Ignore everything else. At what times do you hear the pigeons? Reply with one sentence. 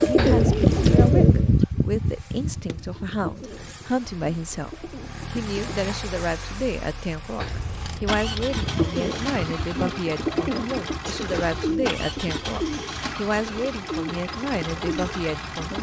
You can hear the pigeons from 0.0 to 5.8 s and from 8.4 to 15.7 s.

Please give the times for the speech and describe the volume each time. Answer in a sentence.
The speech can be heard from 0.0 to 15.7 s, at a steady volume.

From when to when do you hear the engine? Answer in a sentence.
The engine can be heard from 0.0 to 15.7 s.